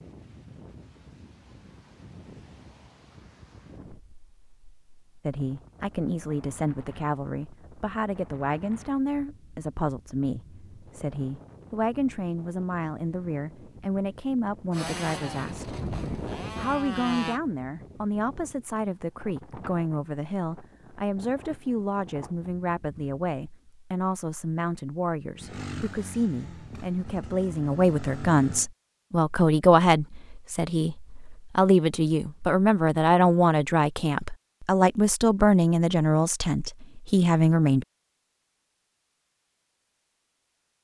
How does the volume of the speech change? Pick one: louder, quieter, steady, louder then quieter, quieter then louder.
louder.